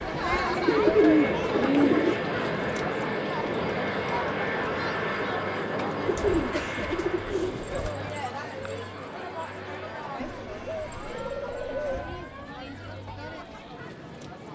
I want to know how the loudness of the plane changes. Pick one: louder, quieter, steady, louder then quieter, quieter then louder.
quieter.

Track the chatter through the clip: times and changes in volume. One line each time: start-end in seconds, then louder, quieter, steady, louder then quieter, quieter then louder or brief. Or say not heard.
0.0-14.5 quieter.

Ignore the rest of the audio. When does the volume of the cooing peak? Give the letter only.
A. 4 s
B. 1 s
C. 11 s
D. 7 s
B.